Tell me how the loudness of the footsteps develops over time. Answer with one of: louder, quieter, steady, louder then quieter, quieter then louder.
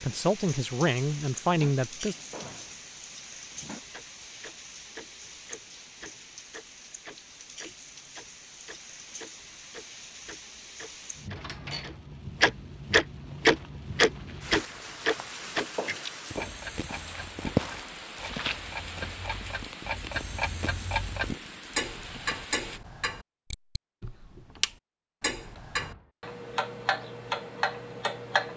louder then quieter.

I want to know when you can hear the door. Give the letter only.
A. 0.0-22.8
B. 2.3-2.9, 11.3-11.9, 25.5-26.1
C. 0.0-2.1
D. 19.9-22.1
B.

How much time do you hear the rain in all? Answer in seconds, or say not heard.
23 s.